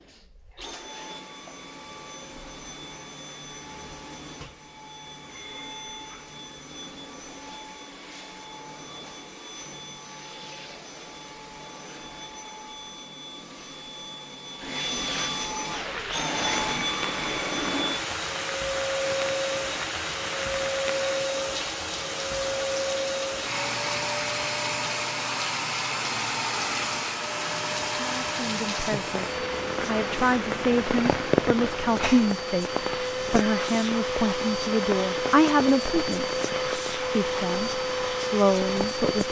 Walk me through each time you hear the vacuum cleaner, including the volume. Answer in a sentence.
You can hear the vacuum cleaner from 0.0 to 39.2 s, getting louder.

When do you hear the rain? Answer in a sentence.
The rain can be heard from 15.7 to 39.2 s.